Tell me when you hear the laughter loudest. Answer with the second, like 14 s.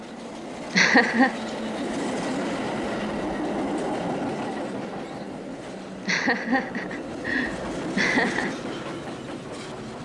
1 s.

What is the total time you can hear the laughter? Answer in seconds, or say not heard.
3 s.